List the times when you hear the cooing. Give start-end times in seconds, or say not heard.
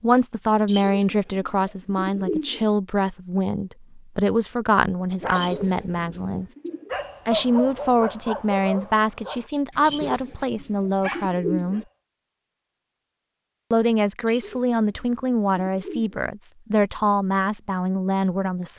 0.7-2.6, 5.3-6.9, 9.8-11.8, 14.2-16.2.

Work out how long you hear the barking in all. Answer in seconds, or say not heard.
7 s.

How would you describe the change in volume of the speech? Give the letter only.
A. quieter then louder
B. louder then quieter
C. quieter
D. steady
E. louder
D.